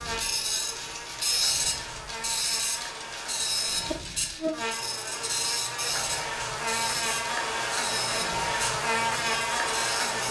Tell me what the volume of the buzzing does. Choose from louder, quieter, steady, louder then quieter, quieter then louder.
louder.